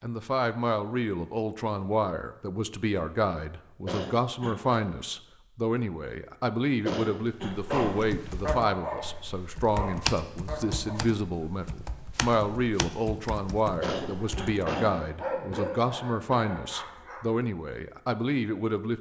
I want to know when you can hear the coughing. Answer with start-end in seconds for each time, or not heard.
3.9-4.8, 6.8-8.2, 13.8-15.1.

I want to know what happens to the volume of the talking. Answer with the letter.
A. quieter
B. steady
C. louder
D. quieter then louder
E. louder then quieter
B.